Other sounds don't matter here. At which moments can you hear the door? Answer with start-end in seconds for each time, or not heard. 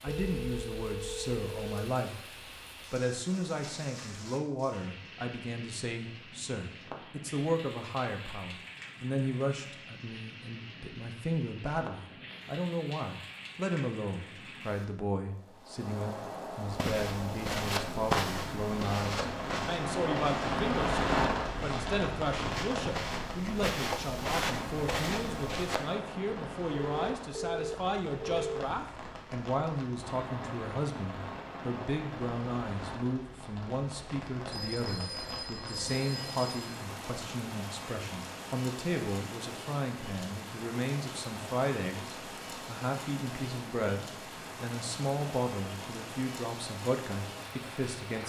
not heard.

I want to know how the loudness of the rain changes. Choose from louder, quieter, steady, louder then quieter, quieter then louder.
louder then quieter.